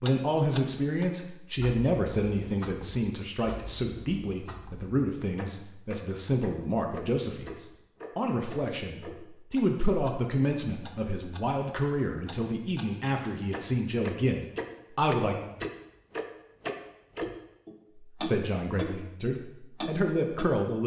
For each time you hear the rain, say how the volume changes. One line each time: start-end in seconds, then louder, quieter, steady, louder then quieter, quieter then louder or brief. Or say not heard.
not heard.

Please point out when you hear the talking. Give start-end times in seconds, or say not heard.
0.0-15.3, 18.1-20.8.